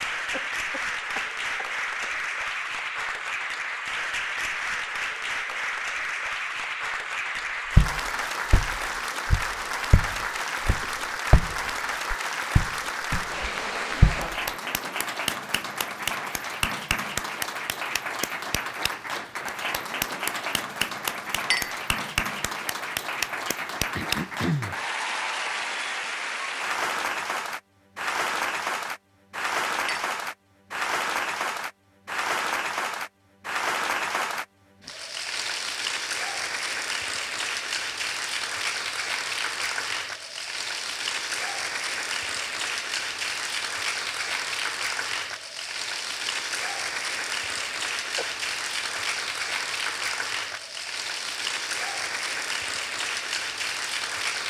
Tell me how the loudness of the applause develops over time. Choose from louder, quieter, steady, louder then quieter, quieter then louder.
steady.